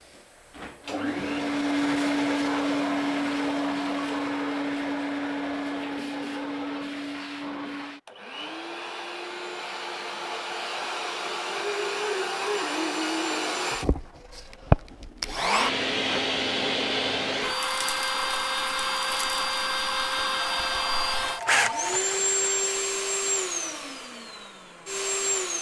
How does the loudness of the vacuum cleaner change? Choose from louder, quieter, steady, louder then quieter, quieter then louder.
quieter then louder.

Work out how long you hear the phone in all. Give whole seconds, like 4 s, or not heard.
2 s.